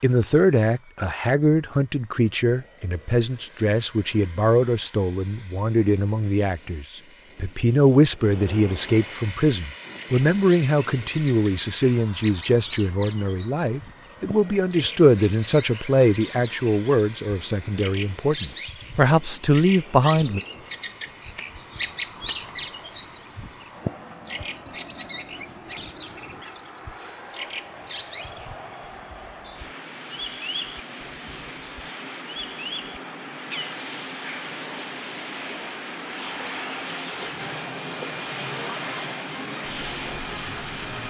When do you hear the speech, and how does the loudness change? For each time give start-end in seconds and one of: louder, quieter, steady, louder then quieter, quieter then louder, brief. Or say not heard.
0.0-20.4 steady.